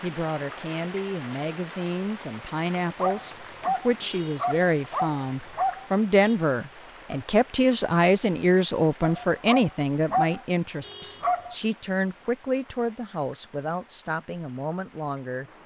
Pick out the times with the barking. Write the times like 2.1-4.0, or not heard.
3.0-6.3, 9.0-11.6.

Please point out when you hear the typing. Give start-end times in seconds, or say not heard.
not heard.